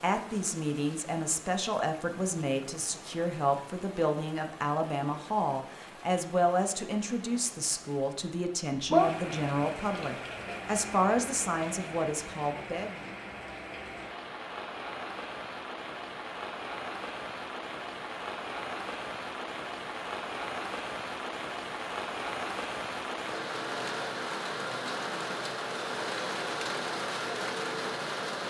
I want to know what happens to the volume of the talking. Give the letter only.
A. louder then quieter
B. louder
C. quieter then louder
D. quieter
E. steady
E.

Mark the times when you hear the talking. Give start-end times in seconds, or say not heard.
0.0-13.1.